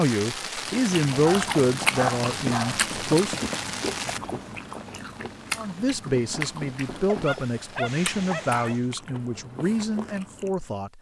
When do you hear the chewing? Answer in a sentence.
You can hear the chewing from 0.6 to 10.7 s.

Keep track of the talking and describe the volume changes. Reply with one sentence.
The loudness of the talking goes down.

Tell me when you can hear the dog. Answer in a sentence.
You can hear the dog from 1.2 to 2.9 s and from 7.0 to 8.8 s.